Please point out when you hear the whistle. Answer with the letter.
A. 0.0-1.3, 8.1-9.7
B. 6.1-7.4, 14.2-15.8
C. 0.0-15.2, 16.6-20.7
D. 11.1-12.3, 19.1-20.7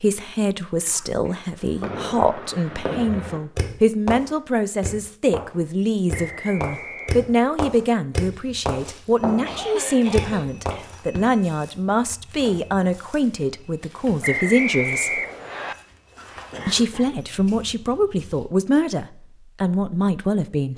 B.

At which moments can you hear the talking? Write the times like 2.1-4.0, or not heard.
0.0-15.2, 16.6-20.7.